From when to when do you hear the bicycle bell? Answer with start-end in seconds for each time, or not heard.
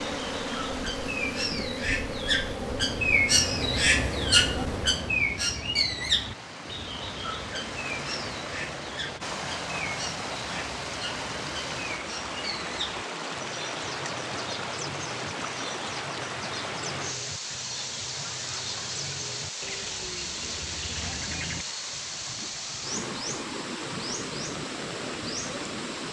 not heard.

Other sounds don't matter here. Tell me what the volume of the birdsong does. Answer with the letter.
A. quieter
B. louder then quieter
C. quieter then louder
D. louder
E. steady
A.